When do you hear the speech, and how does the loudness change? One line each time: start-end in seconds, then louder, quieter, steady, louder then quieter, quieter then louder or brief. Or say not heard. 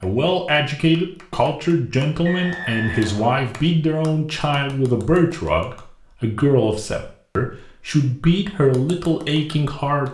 0.0-10.1 steady.